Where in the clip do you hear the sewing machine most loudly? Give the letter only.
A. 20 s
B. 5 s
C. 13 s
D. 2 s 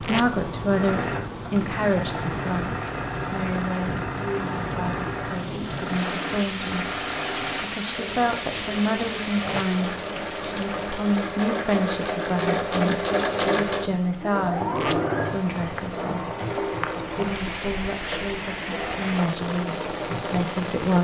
C.